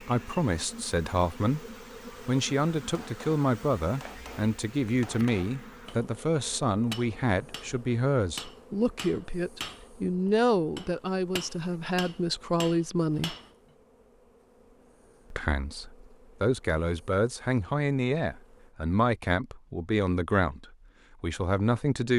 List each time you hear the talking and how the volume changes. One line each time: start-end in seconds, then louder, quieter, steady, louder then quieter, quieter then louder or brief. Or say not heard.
0.0-13.3 steady
15.3-22.1 steady.